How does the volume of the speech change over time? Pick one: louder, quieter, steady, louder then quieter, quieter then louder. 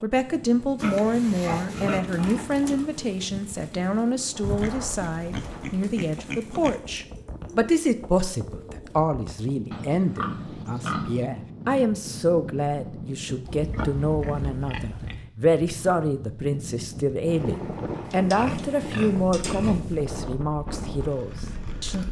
steady.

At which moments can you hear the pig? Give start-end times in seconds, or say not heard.
0.8-2.9, 4.4-6.8, 9.7-11.2, 13.4-15.2, 18.1-19.9.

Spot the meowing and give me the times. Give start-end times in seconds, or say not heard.
not heard.